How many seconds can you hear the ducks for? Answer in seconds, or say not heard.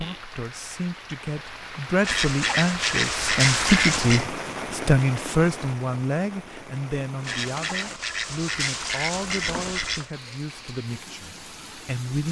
5 s.